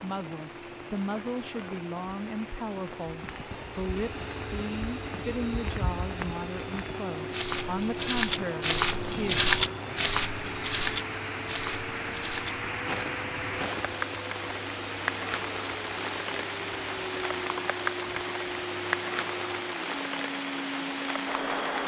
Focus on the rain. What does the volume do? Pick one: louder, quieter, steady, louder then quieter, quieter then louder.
louder.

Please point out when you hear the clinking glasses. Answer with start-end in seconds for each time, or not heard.
not heard.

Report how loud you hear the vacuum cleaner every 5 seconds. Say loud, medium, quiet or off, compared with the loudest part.
medium, loud, loud, loud, loud.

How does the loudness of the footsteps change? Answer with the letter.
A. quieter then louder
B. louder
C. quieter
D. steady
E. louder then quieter
E.